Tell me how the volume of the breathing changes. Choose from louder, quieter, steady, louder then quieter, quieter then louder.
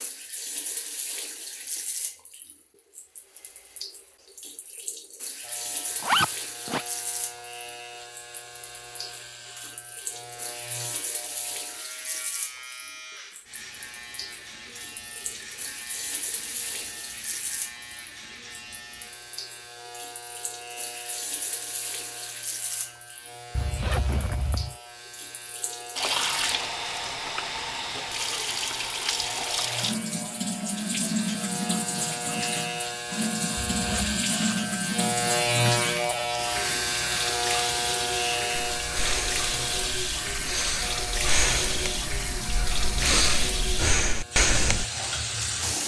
louder.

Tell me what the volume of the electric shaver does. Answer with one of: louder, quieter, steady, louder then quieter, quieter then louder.
louder.